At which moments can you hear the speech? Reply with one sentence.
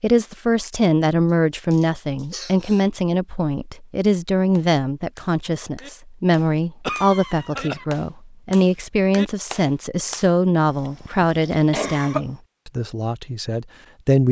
You can hear the speech from 0.0 to 14.2 s.